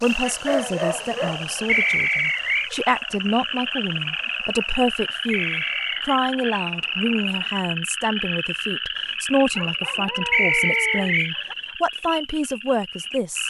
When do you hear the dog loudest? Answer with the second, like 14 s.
1 s.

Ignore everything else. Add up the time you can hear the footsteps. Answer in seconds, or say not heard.
not heard.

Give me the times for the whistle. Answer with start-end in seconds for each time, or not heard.
1.6-2.7, 5.3-6.0, 10.3-11.3.